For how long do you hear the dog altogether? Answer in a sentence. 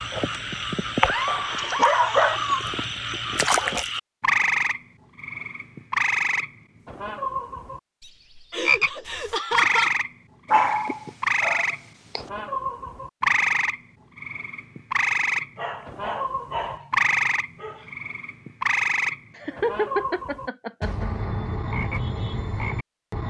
You can hear the dog for 5 seconds altogether.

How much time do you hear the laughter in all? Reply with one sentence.
The laughter can be heard for 4 seconds in total.